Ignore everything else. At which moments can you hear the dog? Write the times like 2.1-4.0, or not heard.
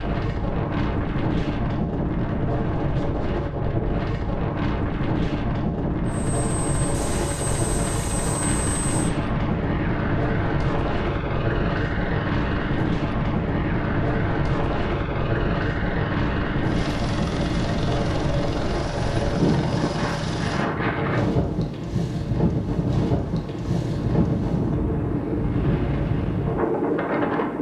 not heard.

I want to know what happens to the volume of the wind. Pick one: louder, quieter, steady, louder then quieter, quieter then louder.
steady.